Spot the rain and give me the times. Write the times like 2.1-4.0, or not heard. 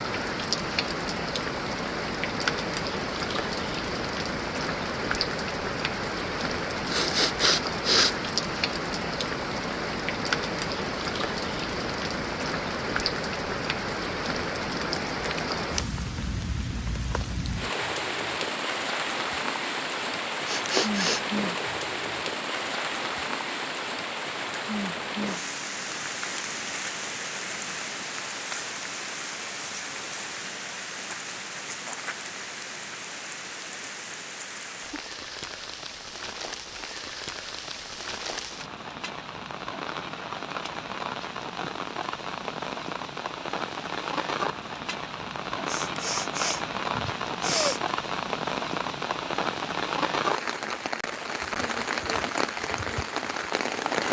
0.0-54.0.